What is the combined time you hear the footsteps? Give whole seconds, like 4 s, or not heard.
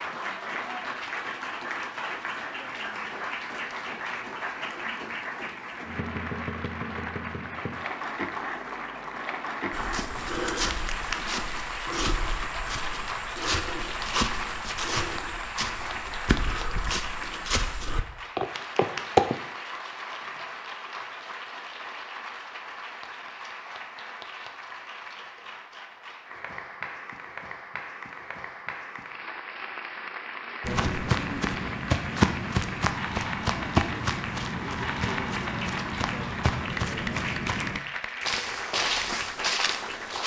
19 s.